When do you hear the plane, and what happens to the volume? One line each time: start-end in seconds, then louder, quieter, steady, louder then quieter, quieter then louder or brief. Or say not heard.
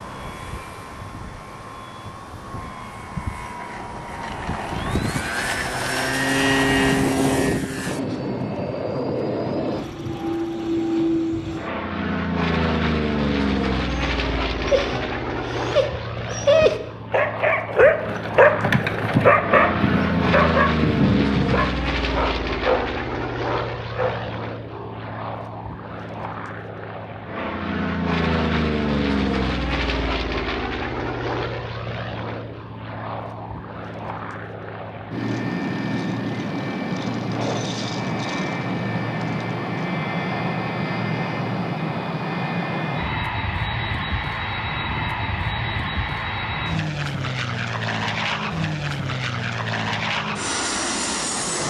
0.0-51.6 steady.